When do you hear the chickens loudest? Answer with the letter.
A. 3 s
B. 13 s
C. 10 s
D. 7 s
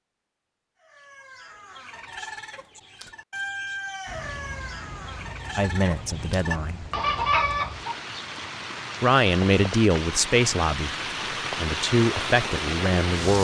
D.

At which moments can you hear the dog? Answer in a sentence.
The dog can't be heard in this clip.